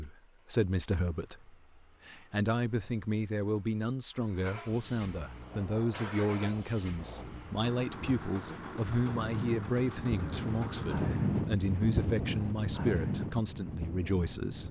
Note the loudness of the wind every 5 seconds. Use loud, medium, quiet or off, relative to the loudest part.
off, medium, loud.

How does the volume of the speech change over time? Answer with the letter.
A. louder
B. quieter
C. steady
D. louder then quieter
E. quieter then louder
C.